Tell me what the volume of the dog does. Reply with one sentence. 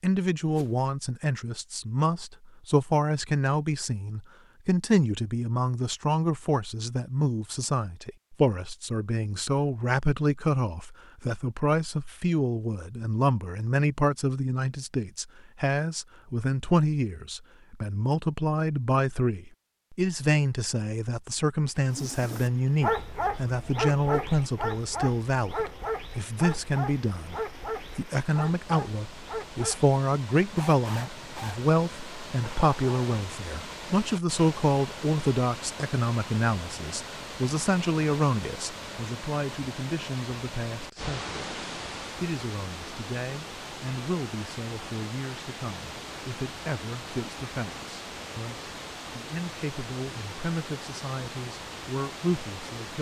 The volume of the dog goes down.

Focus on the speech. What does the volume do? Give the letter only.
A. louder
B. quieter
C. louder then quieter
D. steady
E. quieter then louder
B.